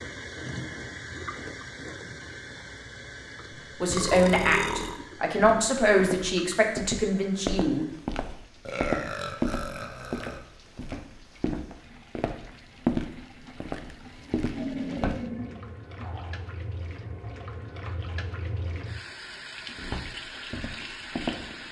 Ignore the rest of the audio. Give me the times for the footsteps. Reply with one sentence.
The footsteps can be heard from 5.3 to 15.2 s and from 19.8 to 21.6 s.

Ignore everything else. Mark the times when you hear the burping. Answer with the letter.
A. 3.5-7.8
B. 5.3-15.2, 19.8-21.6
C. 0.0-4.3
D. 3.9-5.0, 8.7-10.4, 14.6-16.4
D.